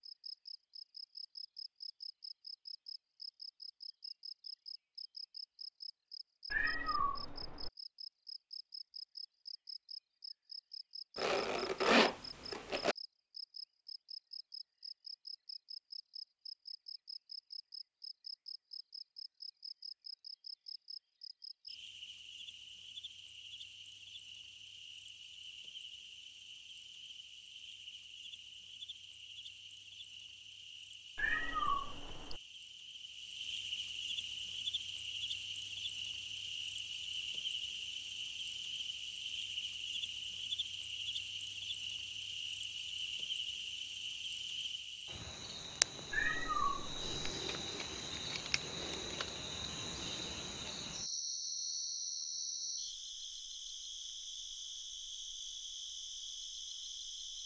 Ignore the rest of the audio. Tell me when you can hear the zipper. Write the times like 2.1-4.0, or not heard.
11.2-12.9.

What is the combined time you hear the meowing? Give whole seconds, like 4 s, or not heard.
4 s.